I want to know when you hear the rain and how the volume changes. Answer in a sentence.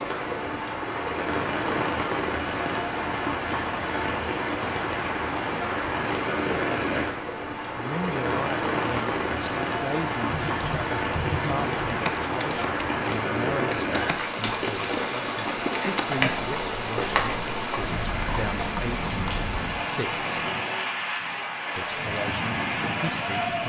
You can hear the rain from 0.0 to 23.6 s, at a steady volume.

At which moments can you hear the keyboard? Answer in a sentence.
The keyboard can be heard from 10.3 to 19.5 s.